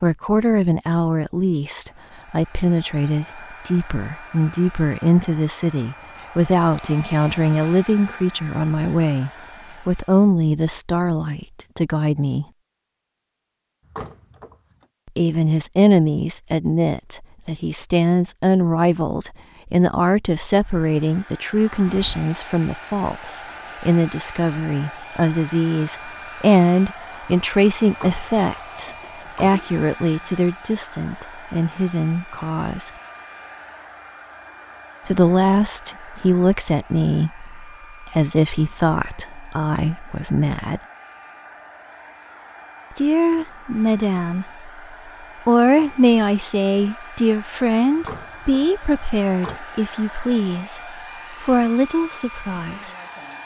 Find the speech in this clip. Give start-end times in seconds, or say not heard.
0.0-12.4, 15.2-32.9, 35.0-40.8, 43.0-44.7, 45.5-52.9.